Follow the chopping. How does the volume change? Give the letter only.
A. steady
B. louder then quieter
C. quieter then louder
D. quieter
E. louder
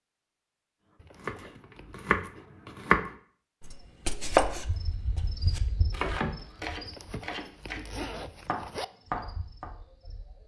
D.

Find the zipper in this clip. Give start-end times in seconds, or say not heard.
0.9-2.1, 6.8-8.8.